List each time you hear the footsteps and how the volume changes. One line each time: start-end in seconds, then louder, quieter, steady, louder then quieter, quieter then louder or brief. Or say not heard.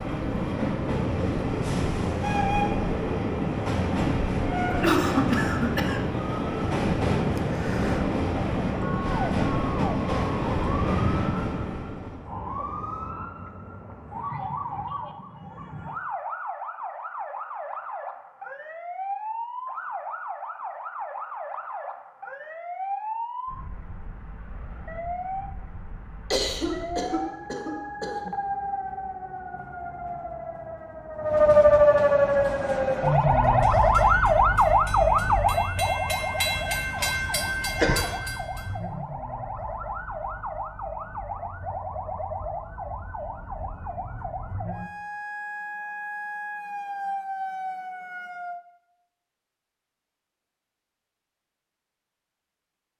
not heard.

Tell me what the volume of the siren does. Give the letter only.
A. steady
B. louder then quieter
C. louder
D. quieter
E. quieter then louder
B.